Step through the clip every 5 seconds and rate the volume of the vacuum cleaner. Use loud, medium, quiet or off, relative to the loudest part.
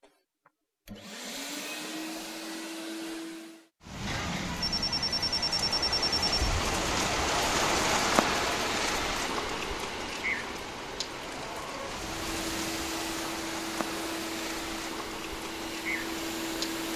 loud, off, loud, loud.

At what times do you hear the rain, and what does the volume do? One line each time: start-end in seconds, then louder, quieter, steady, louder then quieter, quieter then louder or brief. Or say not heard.
3.8-16.9 louder then quieter.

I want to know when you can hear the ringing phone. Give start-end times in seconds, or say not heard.
4.6-6.6.